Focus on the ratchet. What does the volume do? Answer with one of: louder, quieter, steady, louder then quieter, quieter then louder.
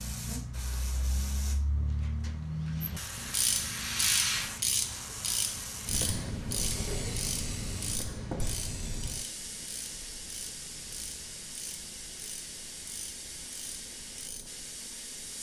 quieter.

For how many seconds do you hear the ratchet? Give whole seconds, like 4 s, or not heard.
12 s.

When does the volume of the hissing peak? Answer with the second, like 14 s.
4 s.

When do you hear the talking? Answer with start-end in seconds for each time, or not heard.
not heard.